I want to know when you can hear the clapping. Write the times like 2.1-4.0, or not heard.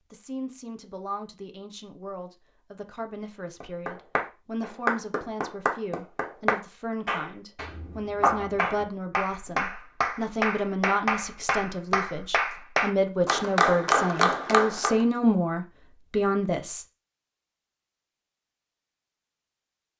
3.6-15.1.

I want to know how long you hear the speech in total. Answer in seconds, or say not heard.
17 s.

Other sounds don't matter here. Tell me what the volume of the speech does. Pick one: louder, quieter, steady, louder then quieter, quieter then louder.
louder.